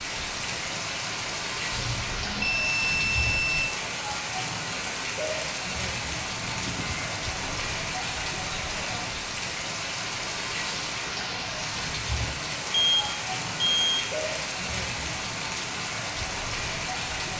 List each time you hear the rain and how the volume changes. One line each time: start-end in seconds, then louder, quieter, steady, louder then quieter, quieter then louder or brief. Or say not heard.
0.0-17.3 steady.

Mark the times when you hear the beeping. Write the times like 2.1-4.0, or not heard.
1.7-3.6, 6.4-7.7, 12.7-14.1.